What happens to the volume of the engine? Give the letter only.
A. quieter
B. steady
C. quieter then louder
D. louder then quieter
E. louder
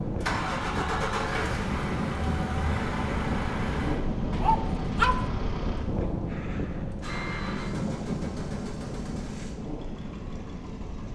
A.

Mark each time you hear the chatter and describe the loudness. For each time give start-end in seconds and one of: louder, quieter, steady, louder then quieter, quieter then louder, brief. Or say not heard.
not heard.